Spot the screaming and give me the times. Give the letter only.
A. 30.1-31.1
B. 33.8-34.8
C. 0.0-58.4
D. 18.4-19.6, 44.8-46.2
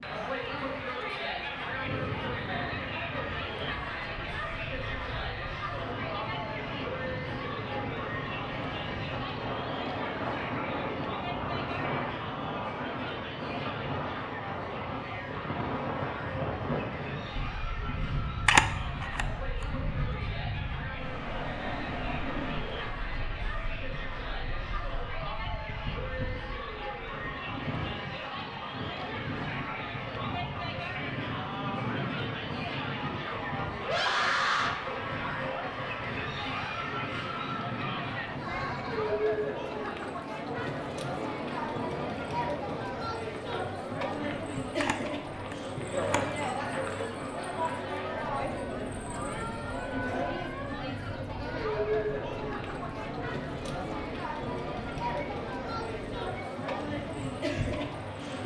B.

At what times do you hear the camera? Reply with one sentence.
You can hear the camera from 18.4 to 19.6 s and from 44.8 to 46.2 s.